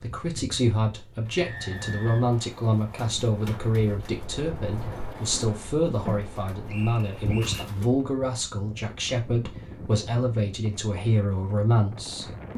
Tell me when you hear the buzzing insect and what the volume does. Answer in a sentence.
The buzzing insect can't be heard in this clip.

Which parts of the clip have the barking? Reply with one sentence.
The barking can't be heard in this clip.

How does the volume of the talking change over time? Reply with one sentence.
The volume of the talking stays about the same.